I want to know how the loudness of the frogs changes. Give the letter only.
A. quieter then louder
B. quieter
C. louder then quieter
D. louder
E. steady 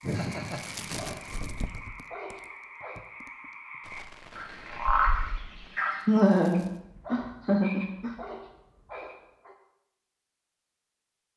C.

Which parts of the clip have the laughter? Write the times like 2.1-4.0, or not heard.
0.0-1.2, 6.0-8.1.